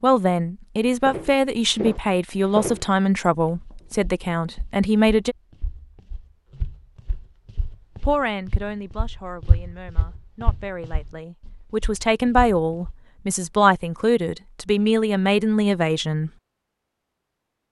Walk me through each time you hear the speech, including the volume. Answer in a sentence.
The speech can be heard from 0.0 to 5.3 s, at a steady volume; and from 8.0 to 16.3 s, getting louder.